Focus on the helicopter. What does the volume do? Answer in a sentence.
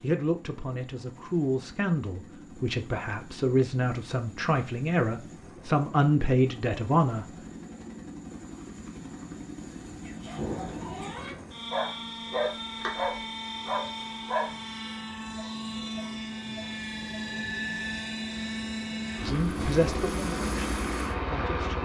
The volume of the helicopter goes up.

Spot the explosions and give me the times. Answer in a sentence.
You can hear the explosions from 10.3 to 11.1 s.